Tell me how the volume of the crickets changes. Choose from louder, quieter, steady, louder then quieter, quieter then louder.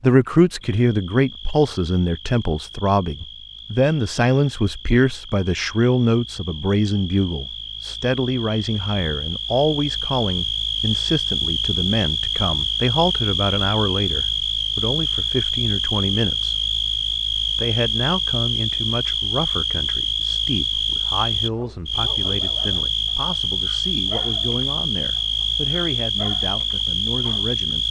louder.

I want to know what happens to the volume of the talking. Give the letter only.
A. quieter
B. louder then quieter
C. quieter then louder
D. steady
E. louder
A.